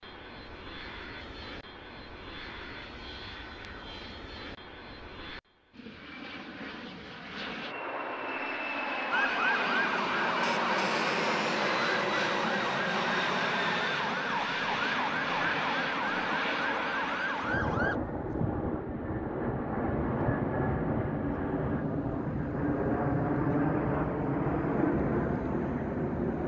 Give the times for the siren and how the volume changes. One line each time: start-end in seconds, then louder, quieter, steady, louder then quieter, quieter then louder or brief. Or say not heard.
9.1-18.0 steady.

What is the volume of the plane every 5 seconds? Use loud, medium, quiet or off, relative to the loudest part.
quiet, medium, loud, loud, loud, loud.